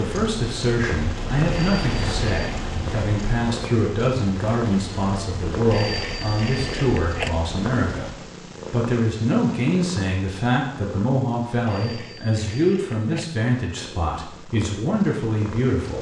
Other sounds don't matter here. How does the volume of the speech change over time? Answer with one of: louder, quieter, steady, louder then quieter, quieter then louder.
steady.